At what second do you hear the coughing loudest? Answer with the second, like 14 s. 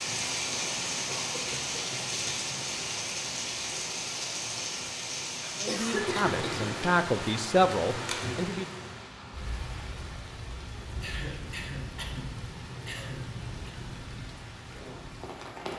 6 s.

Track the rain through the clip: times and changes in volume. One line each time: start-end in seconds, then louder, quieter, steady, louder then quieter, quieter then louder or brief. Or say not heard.
0.0-15.7 quieter.